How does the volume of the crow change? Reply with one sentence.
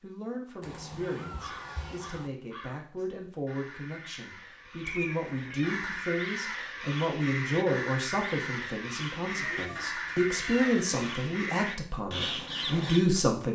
The loudness of the crow goes up.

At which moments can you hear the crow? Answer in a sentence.
You can hear the crow from 1.0 to 13.0 s.